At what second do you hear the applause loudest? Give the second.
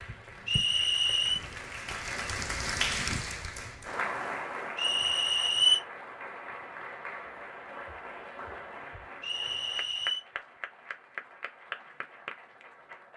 3 s.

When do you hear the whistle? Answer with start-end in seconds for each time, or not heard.
0.5-1.4, 4.8-5.8, 9.2-10.2.